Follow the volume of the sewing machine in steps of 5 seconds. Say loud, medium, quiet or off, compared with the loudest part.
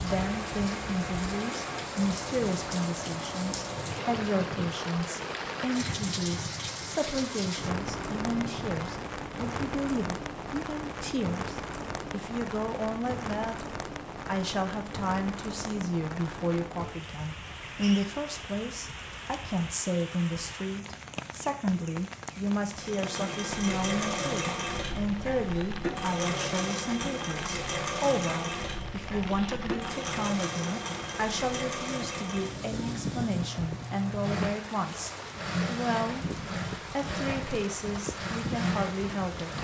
medium, medium, off, off, loud, loud, loud, loud.